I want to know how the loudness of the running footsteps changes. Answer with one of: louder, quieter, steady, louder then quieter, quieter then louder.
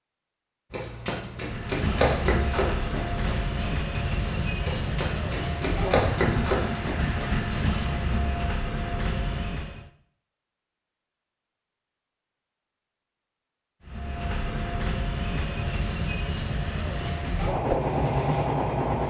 quieter then louder.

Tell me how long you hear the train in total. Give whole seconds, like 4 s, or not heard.
14 s.